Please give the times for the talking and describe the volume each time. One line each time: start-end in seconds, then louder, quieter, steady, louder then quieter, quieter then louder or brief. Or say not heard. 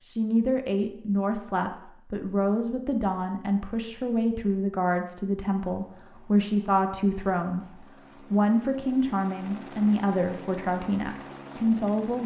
0.1-12.2 steady.